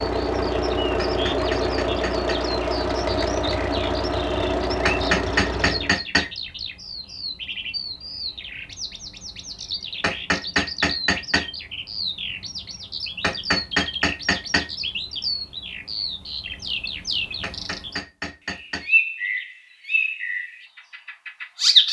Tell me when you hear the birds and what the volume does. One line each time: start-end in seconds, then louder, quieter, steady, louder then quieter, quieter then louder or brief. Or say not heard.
0.0-21.8 louder.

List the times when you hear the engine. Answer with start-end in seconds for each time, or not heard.
0.0-6.0.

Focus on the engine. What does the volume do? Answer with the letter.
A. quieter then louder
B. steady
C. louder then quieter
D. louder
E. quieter
B.